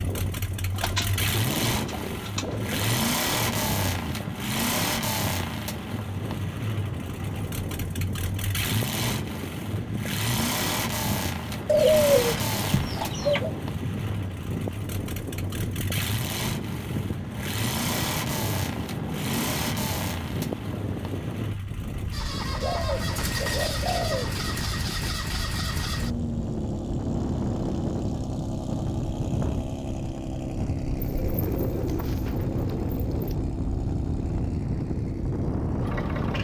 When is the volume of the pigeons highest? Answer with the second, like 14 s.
12 s.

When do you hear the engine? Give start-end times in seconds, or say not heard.
0.0-36.3.